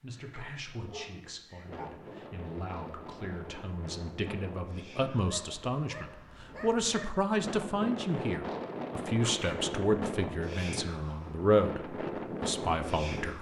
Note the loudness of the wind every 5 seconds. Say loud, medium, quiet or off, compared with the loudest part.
medium, loud, loud.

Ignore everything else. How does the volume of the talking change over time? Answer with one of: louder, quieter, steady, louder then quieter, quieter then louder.
louder.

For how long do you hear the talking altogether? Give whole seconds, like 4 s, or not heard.
13 s.